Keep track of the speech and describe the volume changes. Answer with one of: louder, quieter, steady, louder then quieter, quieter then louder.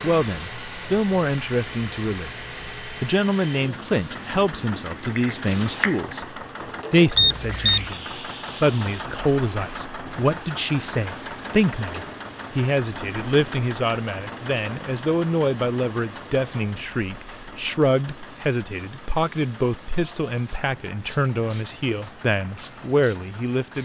steady.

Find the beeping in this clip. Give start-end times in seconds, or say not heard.
7.2-7.9.